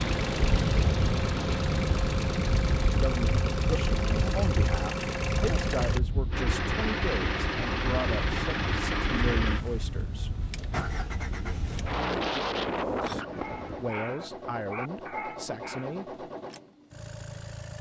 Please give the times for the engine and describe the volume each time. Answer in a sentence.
The engine can be heard from 0.0 to 17.7 s, getting quieter.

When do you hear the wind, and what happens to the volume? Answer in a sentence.
The wind can be heard from 0.0 to 13.9 s, getting quieter then louder.